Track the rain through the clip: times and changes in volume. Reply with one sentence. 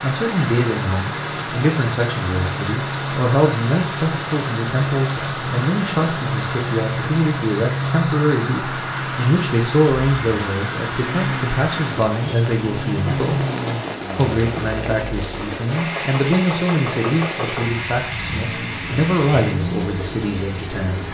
The rain can be heard from 0.0 to 21.0 s, at a steady volume.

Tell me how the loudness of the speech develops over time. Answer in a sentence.
The volume of the speech stays about the same.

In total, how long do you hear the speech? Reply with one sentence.
The speech can be heard for 20 seconds in total.